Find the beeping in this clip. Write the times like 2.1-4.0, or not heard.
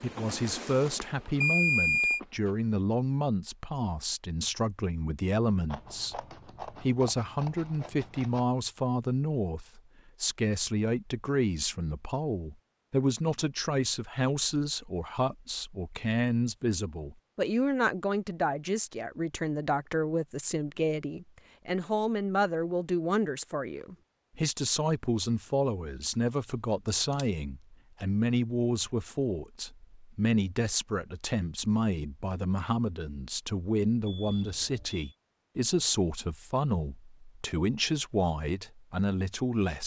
1.4-2.2, 34.0-35.1.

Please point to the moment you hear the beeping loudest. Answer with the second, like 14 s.
2 s.